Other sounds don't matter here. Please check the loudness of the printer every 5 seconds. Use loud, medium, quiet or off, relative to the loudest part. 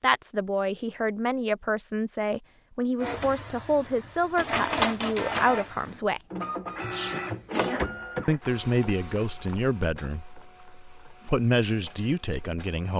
loud, loud, quiet.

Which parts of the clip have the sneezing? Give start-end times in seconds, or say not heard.
6.8-7.3.